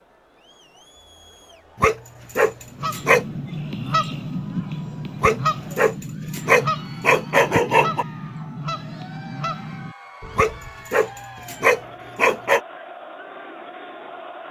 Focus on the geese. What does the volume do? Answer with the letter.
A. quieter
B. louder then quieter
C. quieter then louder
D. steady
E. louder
A.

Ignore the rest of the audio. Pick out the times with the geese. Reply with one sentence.
You can hear the geese from 2.7 to 10.9 s.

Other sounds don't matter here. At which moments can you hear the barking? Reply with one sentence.
You can hear the barking from 1.8 to 3.2 s, from 5.2 to 8.1 s and from 10.3 to 12.6 s.